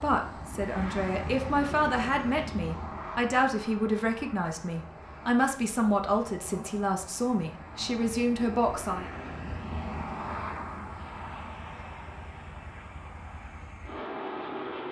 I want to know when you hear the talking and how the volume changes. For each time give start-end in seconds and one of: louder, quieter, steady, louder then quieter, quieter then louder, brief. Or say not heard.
0.0-9.1 steady.